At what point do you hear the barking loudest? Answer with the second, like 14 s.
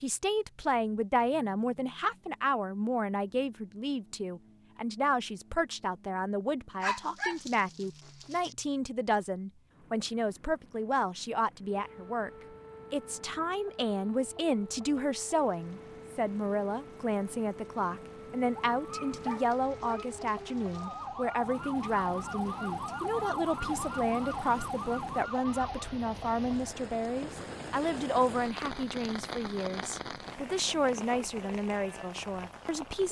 7 s.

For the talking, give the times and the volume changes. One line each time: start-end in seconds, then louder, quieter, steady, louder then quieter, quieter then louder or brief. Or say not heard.
0.0-12.3 steady
12.9-33.0 steady.